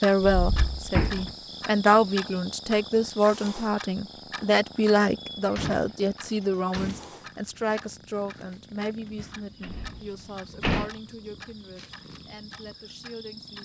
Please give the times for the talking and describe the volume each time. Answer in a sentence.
You can hear the talking from 0.0 to 13.6 s, getting quieter.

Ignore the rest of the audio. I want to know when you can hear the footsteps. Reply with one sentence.
The footsteps can't be heard in this clip.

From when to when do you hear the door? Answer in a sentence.
The door can be heard from 0.2 to 1.4 s, from 5.3 to 7.1 s and from 9.6 to 10.9 s.